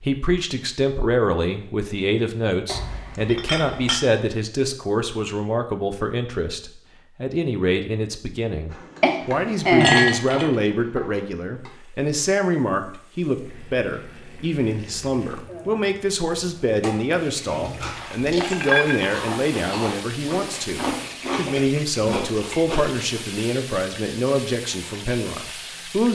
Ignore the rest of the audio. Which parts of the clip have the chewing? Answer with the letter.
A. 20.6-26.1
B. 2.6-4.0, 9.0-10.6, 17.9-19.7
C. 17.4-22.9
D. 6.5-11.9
C.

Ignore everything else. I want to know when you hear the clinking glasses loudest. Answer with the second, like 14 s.
10 s.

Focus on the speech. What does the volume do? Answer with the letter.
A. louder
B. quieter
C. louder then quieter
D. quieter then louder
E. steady
E.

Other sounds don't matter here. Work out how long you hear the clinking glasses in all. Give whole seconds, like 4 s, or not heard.
5 s.